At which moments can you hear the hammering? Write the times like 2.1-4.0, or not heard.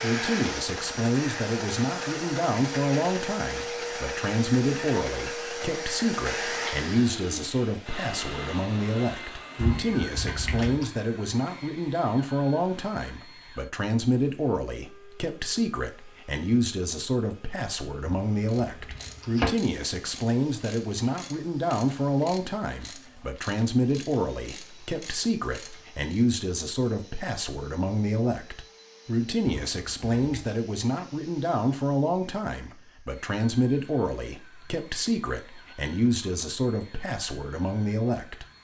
not heard.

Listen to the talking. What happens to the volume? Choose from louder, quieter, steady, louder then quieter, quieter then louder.
steady.